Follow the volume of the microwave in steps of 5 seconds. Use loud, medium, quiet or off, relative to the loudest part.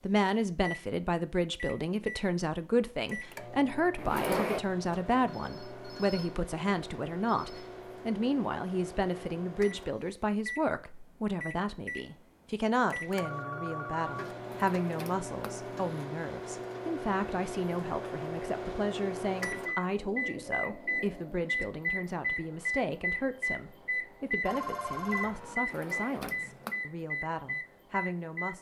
medium, medium, medium, loud, loud, loud.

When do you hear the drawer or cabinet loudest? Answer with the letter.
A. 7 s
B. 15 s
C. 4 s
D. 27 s
C.